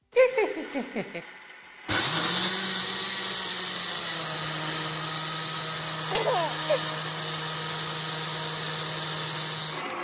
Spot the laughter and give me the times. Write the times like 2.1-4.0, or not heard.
0.1-1.2, 6.1-6.8.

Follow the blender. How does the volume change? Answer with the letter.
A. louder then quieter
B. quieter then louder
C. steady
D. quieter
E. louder
C.